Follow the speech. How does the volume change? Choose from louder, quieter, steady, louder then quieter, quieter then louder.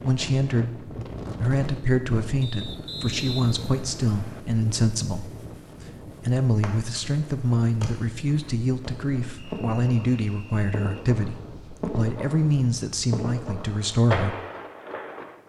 steady.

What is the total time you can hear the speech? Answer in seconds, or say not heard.
14 s.